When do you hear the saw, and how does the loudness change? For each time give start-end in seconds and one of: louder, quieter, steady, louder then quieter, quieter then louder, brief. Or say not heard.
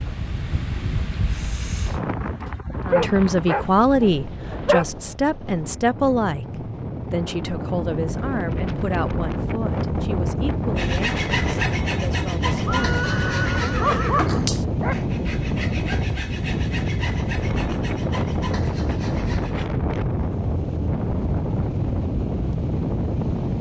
10.8-19.7 quieter.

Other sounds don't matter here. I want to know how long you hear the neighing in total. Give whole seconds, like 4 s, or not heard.
2 s.